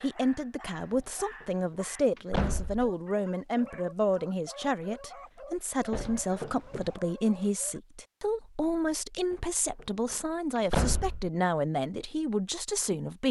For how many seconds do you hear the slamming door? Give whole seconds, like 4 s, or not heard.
4 s.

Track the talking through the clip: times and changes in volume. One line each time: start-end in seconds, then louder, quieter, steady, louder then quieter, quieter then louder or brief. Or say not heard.
0.0-13.2 steady.